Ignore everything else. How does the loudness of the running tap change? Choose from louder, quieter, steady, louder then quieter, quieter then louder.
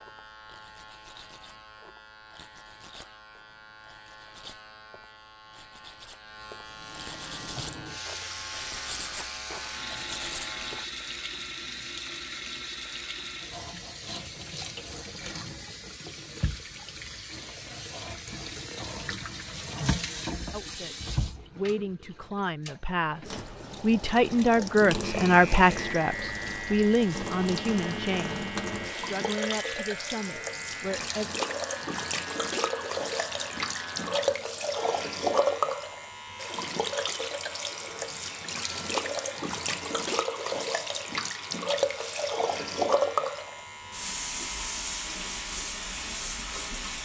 louder.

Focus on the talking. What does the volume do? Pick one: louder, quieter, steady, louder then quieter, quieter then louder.
louder then quieter.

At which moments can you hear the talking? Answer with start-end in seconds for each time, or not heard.
20.5-31.3.